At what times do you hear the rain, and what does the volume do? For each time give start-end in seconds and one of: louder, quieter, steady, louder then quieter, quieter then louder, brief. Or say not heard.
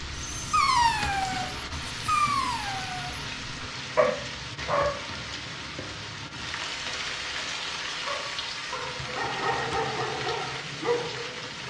0.0-11.6 steady.